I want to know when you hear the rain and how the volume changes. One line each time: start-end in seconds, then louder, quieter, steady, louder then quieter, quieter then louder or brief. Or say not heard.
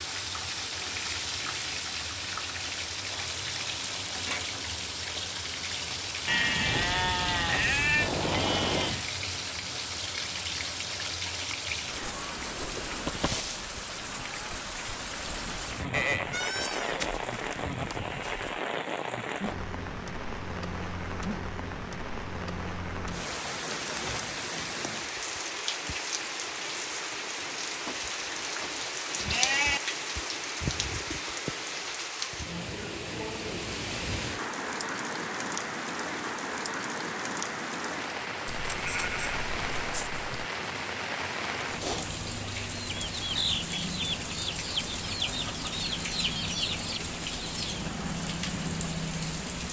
0.0-49.6 steady.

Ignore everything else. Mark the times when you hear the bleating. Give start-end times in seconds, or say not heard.
6.2-9.1, 15.9-18.6, 27.9-29.8, 38.5-40.5.